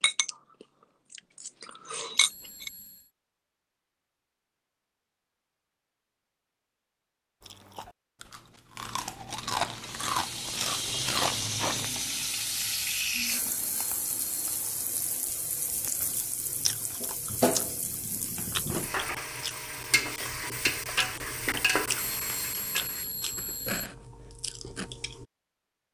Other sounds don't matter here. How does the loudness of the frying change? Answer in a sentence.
The volume of the frying stays about the same.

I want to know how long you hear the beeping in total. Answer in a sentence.
The beeping can be heard for 5 seconds in total.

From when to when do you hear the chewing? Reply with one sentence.
You can hear the chewing from 0.0 to 2.7 s, from 7.4 to 11.8 s and from 15.8 to 25.2 s.